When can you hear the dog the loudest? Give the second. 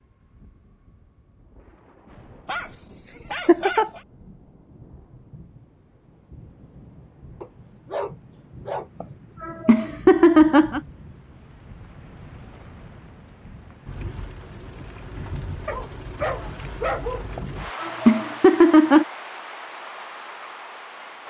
17 s.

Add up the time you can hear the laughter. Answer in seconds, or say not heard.
4 s.